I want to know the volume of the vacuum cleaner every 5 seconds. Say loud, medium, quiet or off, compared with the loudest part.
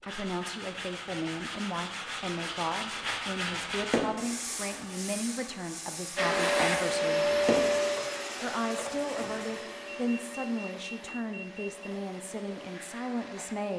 off, loud, quiet.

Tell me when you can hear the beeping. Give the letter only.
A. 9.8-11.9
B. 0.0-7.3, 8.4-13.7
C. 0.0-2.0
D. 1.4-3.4
A.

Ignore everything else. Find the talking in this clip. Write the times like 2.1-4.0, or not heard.
0.0-7.3, 8.4-13.7.